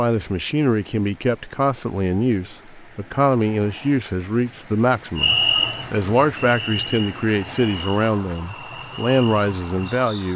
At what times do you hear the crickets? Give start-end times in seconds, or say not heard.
5.2-10.3.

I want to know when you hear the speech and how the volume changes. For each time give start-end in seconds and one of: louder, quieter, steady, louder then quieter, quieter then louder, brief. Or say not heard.
0.0-10.3 steady.